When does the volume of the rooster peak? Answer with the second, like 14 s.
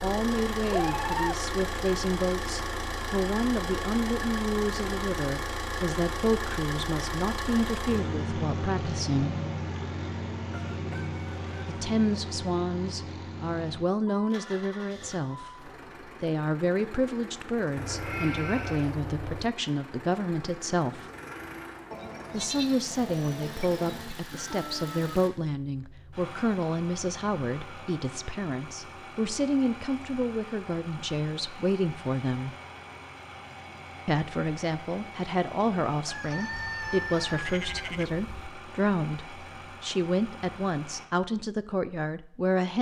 37 s.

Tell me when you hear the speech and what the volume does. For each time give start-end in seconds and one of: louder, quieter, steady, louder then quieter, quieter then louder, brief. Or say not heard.
0.0-9.3 steady
11.7-21.1 steady
22.3-32.5 steady
34.0-42.7 steady.